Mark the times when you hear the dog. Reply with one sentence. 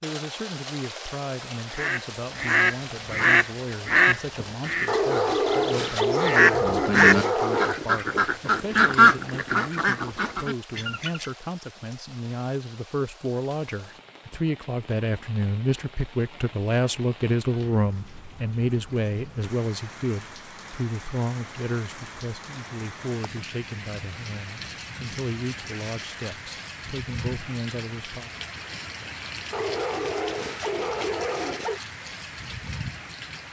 The dog can be heard from 4.8 to 7.8 s and from 29.5 to 31.8 s.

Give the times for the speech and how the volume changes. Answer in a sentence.
You can hear the speech from 0.0 to 28.3 s, getting louder then quieter.